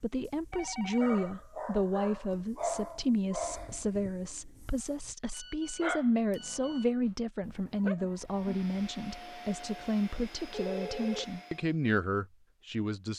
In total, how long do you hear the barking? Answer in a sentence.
You can hear the barking for 9 seconds altogether.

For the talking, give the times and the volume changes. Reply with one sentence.
The talking can be heard from 0.0 to 13.1 s, at a steady volume.